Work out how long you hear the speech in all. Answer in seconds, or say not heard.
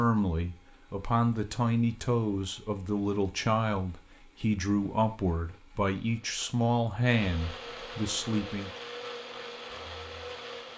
9 s.